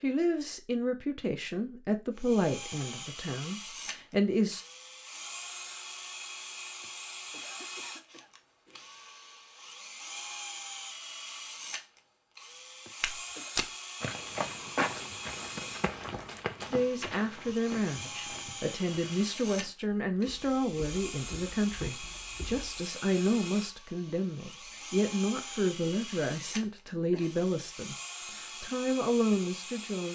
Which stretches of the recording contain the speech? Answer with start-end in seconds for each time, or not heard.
0.0-4.7, 16.7-30.1.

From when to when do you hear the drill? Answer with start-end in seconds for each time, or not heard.
2.1-30.1.